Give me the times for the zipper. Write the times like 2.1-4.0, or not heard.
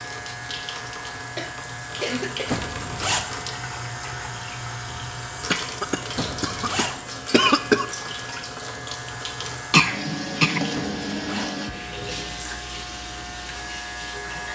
2.5-3.2, 6.1-7.0, 10.7-11.5.